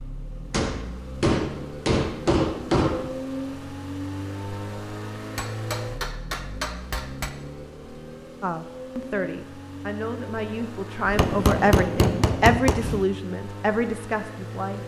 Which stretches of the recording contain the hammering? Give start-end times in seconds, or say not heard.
0.5-3.2, 5.3-7.3, 11.2-13.1.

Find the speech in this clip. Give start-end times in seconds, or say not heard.
8.4-14.8.